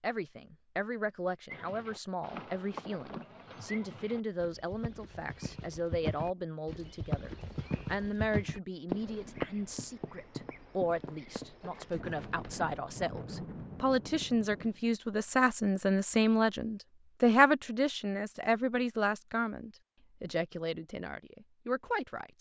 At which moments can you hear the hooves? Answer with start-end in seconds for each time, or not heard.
1.4-12.7.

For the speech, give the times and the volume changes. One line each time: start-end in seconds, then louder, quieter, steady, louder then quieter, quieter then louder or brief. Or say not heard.
0.0-22.3 louder then quieter.